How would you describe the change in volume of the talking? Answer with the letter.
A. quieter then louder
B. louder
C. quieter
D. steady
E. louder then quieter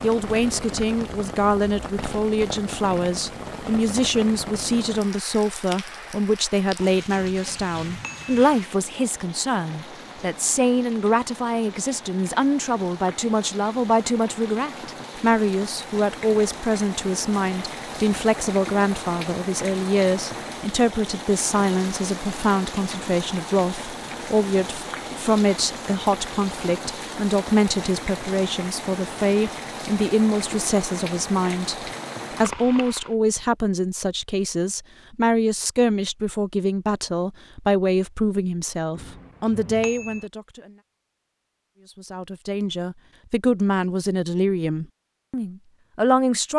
D.